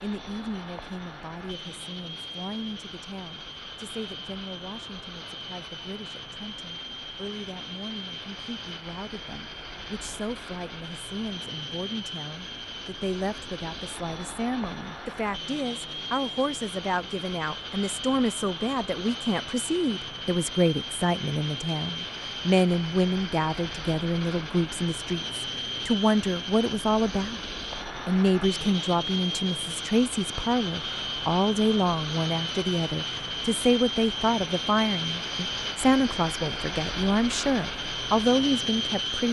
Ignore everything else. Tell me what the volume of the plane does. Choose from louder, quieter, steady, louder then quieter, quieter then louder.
louder.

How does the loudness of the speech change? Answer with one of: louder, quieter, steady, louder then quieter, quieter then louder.
louder.